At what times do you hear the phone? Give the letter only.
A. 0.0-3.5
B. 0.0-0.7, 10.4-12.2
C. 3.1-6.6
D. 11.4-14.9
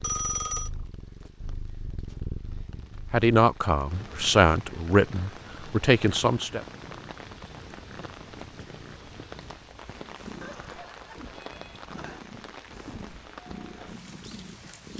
B.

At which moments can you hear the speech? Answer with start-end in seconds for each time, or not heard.
3.1-6.6.